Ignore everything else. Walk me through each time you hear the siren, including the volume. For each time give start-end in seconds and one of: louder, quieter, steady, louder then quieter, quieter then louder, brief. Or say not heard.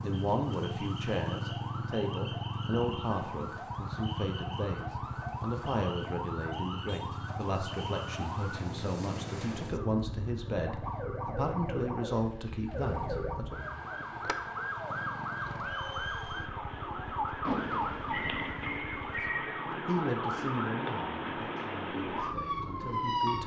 0.0-23.4 louder.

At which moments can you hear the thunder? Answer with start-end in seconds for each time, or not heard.
17.4-18.8.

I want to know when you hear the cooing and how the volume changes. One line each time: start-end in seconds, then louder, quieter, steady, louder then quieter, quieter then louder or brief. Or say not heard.
not heard.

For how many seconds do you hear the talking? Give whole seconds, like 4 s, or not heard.
17 s.